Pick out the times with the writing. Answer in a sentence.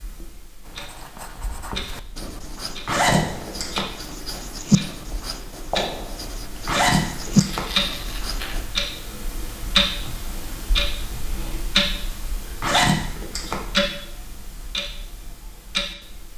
The writing can be heard from 0.6 to 8.7 s.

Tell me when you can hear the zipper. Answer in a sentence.
The zipper can be heard from 2.9 to 3.8 s, from 6.7 to 7.6 s and from 12.6 to 13.6 s.